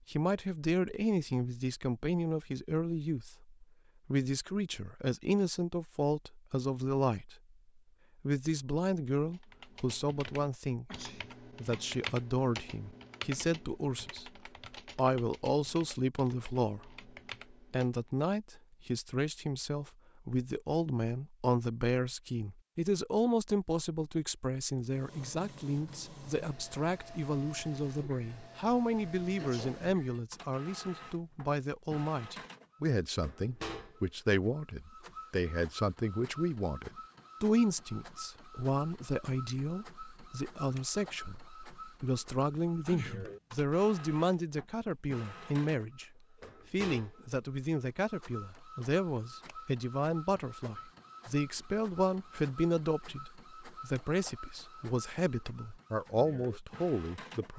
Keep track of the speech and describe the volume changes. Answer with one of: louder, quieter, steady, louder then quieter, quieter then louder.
steady.